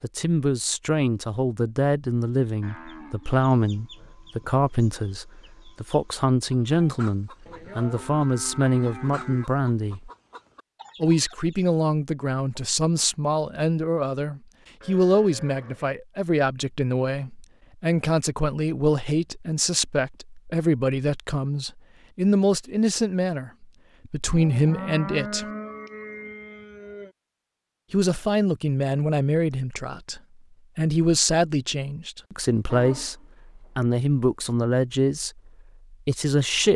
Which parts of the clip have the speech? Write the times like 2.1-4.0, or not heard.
0.0-10.1, 11.0-25.4, 27.9-36.7.